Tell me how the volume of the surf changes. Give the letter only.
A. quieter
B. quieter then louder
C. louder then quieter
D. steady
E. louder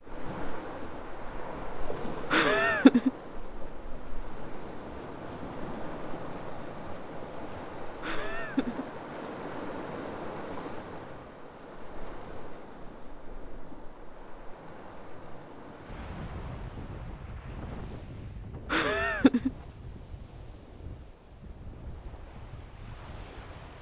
A.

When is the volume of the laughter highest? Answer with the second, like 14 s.
3 s.